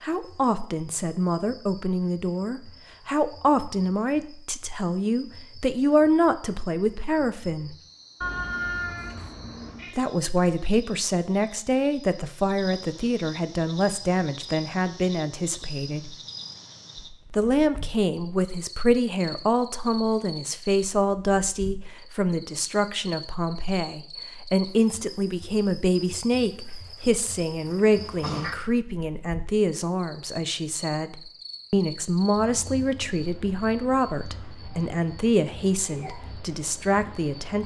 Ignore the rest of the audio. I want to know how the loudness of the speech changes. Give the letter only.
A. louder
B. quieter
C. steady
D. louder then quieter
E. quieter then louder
C.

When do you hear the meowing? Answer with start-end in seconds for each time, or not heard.
8.2-10.0, 27.9-28.6.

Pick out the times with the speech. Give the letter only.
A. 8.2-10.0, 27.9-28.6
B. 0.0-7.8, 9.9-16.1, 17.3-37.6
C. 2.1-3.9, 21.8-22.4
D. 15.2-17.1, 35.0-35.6
B.